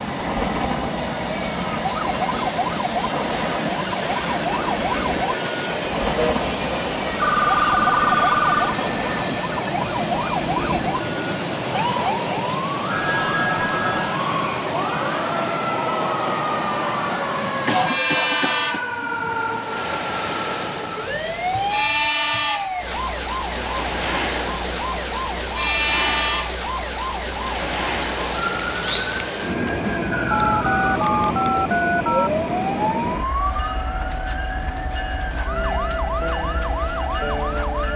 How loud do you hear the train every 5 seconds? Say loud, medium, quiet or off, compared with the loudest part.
loud, loud, loud, loud, loud, loud, loud, medium.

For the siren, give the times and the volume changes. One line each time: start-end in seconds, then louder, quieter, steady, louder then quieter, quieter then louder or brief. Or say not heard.
0.1-37.9 steady.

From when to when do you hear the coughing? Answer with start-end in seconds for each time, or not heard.
17.6-18.9.